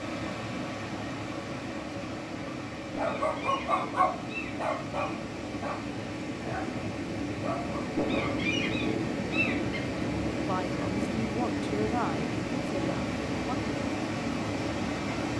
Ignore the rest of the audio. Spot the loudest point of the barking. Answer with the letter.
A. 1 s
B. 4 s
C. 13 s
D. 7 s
B.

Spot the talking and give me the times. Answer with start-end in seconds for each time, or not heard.
10.4-13.6.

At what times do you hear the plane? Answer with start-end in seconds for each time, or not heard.
not heard.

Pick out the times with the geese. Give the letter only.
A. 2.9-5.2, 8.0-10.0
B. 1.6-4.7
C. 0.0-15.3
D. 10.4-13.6
A.